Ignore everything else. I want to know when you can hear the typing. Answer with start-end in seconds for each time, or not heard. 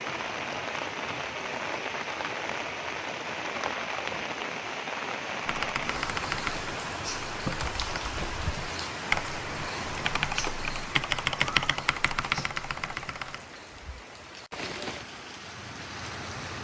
5.4-13.4.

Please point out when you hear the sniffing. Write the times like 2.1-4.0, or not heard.
not heard.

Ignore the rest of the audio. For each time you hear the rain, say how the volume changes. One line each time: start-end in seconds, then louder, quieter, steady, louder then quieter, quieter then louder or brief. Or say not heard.
0.0-16.5 quieter.